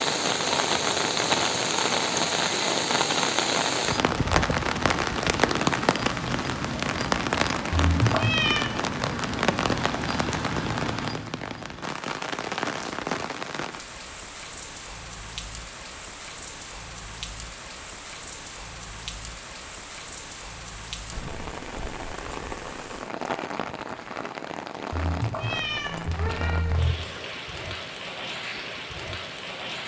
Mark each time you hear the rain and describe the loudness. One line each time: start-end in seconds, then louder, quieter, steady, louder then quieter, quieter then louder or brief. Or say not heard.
0.0-29.8 quieter.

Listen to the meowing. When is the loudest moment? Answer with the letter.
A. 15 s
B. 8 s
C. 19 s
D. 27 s
B.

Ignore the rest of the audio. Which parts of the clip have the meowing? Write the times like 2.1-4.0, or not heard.
7.7-8.7, 24.9-26.9.